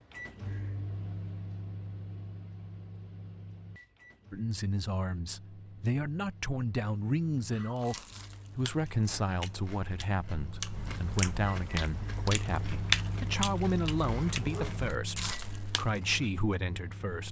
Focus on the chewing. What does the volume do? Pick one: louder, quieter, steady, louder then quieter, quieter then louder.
louder then quieter.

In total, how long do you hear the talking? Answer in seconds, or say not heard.
13 s.